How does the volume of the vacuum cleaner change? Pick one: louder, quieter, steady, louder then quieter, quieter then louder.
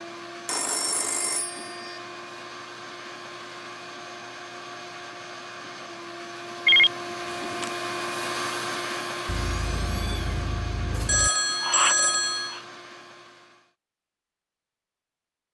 louder then quieter.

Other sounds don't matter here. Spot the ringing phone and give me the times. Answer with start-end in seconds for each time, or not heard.
0.5-1.9, 6.7-7.7, 11.1-12.6.